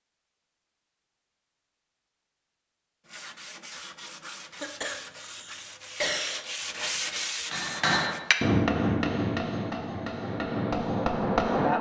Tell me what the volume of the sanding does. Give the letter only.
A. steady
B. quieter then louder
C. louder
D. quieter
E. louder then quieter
C.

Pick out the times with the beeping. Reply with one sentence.
You can't hear the beeping here.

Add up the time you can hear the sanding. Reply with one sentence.
You can hear the sanding for 5 seconds altogether.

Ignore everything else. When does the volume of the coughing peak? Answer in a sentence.
The volume of the coughing peaks at 6 seconds.